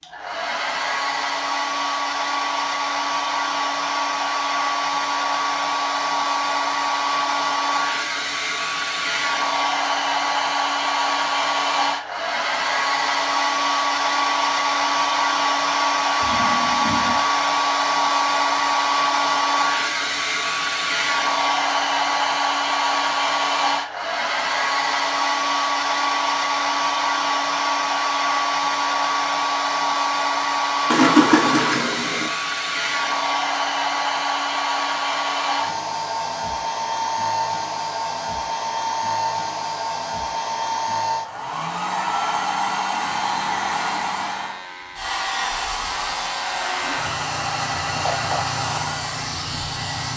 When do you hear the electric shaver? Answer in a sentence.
The electric shaver can be heard from 42.9 to 50.1 s.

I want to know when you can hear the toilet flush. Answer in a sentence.
The toilet flush can be heard from 16.2 to 17.2 s and from 30.9 to 32.3 s.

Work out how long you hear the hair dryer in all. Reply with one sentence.
The hair dryer can be heard for 50 seconds in total.